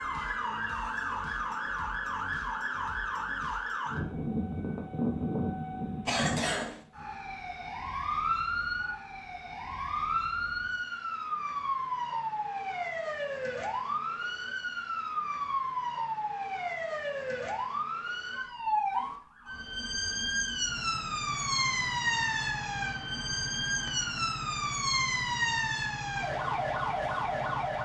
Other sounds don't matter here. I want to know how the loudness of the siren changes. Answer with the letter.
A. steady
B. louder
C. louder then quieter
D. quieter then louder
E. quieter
A.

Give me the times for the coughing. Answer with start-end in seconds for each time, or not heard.
6.0-6.8.